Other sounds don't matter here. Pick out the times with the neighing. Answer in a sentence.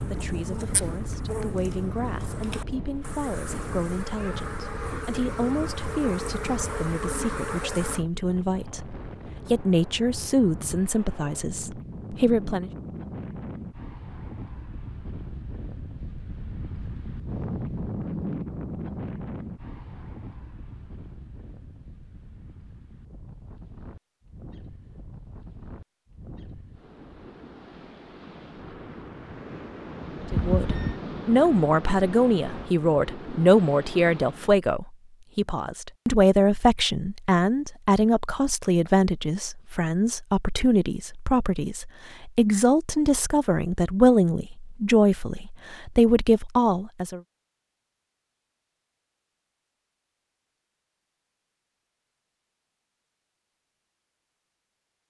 The neighing can be heard from 30.3 to 30.9 s.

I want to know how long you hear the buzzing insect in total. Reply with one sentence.
The buzzing insect can be heard for 8 seconds in total.